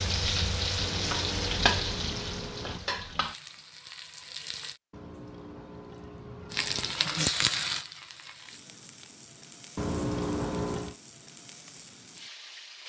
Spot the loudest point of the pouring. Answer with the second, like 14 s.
10 s.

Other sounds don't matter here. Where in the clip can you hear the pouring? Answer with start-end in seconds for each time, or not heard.
0.8-2.8, 4.9-7.0, 9.8-10.9.